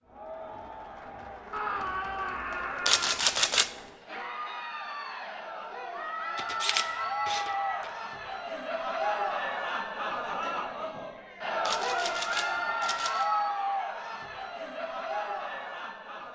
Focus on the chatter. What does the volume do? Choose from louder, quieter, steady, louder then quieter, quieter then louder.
louder.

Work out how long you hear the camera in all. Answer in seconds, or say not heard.
4 s.